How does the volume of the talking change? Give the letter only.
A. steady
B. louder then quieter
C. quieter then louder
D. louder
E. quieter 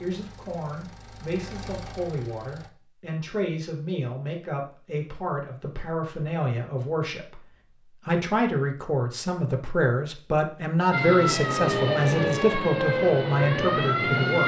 D.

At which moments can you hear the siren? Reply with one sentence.
The siren can be heard from 10.9 to 14.4 s.